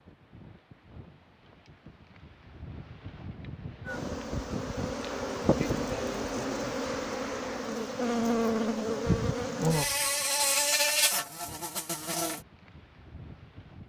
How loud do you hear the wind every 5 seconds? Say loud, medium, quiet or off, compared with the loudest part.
medium, loud, quiet.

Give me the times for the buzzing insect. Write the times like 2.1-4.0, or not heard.
3.9-12.4.